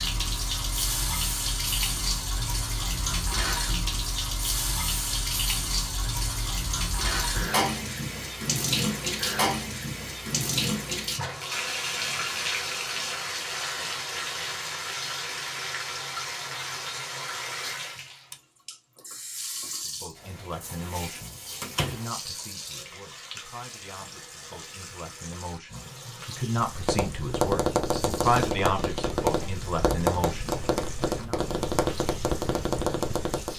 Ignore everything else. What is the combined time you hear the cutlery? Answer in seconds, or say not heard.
not heard.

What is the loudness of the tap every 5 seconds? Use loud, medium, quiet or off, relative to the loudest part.
loud, loud, loud, medium, quiet, quiet, quiet.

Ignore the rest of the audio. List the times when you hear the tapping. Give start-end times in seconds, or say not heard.
26.6-33.5.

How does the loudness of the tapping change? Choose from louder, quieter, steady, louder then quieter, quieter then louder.
steady.